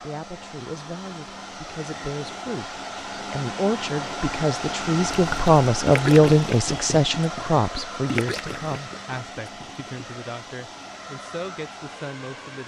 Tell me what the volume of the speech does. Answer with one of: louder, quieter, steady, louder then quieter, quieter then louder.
louder then quieter.